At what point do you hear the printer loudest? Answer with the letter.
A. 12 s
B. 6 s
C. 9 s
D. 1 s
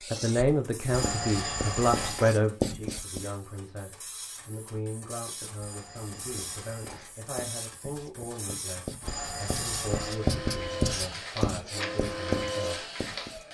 A.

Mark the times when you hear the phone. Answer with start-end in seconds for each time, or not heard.
0.8-2.3, 5.5-7.1, 9.0-10.2.